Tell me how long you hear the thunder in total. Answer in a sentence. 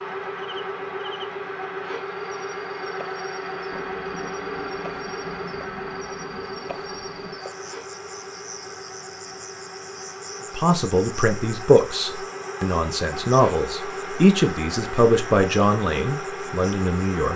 The thunder can be heard for 4 seconds in total.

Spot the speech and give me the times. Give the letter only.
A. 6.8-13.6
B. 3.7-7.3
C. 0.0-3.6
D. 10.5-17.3
D.